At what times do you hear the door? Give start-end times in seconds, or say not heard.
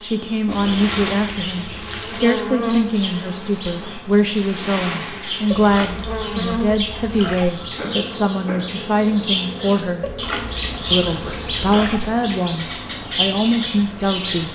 not heard.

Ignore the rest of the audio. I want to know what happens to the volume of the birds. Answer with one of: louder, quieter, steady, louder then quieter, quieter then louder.
louder.